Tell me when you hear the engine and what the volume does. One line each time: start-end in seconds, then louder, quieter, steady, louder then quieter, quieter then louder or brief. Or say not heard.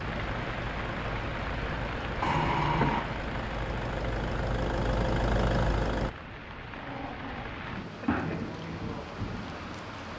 0.0-6.1 louder.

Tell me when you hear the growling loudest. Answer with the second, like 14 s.
3 s.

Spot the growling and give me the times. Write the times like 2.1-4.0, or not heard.
2.2-3.0, 6.7-8.5.